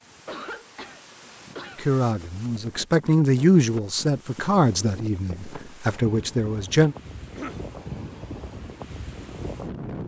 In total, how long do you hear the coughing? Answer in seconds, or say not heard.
2 s.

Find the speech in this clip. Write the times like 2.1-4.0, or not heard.
1.8-7.0.